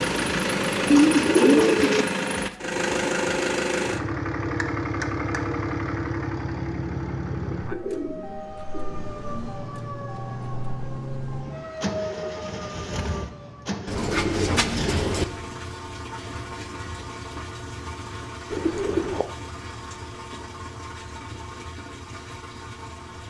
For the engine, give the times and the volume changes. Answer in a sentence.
You can hear the engine from 0.0 to 23.2 s, getting quieter.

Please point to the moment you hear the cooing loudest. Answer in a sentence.
The loudest moment of the cooing is at 1 second.